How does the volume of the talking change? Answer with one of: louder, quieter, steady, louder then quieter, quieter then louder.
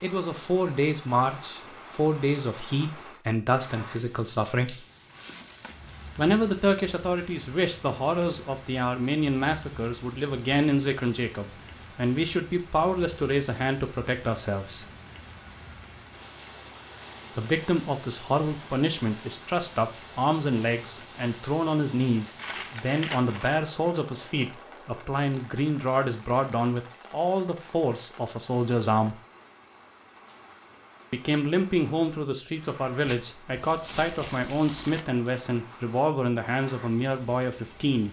steady.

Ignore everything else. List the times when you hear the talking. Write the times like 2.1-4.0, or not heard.
0.0-4.8, 6.2-14.8, 17.4-29.2, 31.1-38.0.